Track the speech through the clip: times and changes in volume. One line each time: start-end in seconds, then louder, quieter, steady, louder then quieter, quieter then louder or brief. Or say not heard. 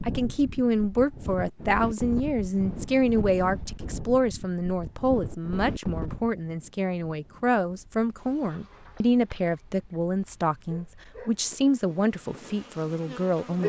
0.1-13.6 steady.